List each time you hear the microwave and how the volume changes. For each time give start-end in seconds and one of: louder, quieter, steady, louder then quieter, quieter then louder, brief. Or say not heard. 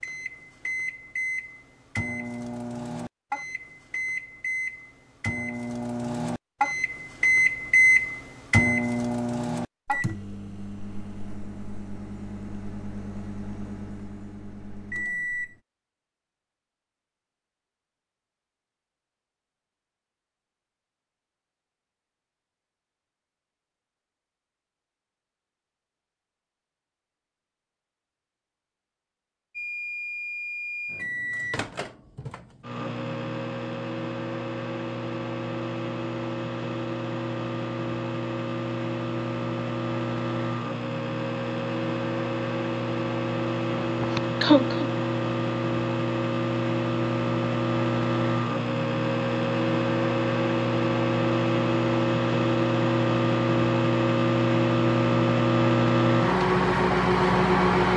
0.0-15.6 louder then quieter
29.6-57.9 louder.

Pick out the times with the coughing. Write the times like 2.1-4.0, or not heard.
43.8-44.9.